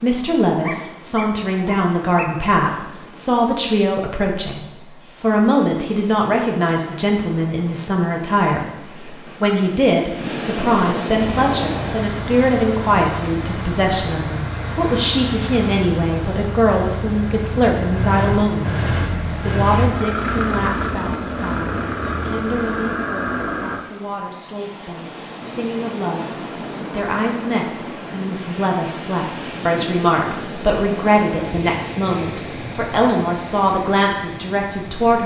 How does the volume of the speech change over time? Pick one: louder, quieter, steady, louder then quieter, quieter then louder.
quieter then louder.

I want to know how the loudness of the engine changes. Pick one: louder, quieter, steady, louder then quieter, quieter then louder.
louder.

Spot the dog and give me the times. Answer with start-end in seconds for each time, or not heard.
0.6-2.3.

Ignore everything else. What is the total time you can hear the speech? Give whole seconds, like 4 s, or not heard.
35 s.